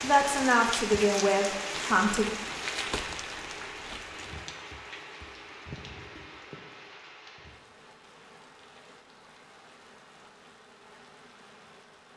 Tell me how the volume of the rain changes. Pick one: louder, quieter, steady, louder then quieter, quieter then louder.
quieter.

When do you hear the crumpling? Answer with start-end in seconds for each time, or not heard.
1.7-4.5.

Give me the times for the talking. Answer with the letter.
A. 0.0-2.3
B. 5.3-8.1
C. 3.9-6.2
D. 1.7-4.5
A.